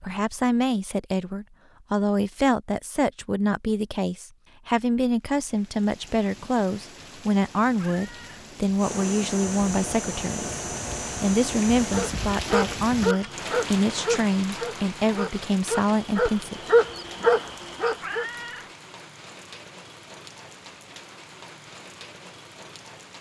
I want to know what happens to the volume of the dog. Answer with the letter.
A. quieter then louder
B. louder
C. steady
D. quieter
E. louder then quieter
A.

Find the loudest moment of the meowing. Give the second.
18 s.